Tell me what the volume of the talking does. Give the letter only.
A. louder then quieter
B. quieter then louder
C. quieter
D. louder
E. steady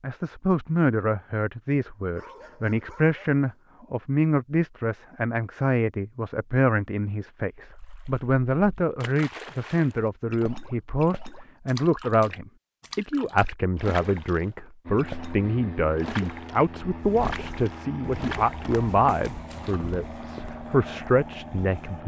E.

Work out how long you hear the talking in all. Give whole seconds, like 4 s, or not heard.
22 s.